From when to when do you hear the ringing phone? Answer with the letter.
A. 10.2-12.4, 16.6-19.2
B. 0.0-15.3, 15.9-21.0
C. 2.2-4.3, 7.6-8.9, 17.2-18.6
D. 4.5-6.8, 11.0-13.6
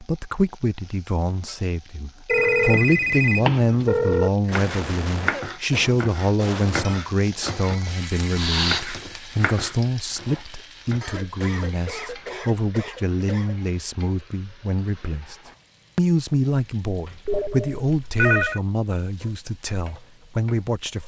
C.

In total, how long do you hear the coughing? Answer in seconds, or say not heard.
5 s.